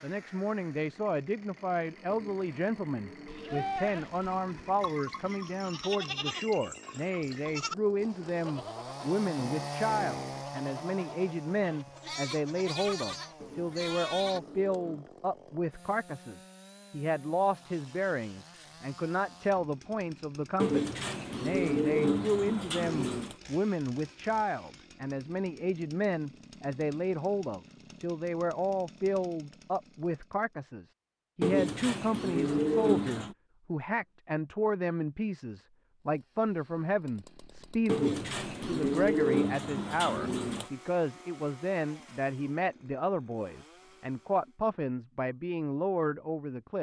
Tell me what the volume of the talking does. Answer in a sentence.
The loudness of the talking stays about the same.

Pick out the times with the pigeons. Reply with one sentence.
The pigeons can be heard from 2.0 to 4.8 s, from 13.4 to 15.1 s, from 20.6 to 23.4 s, from 31.4 to 33.4 s and from 37.9 to 40.7 s.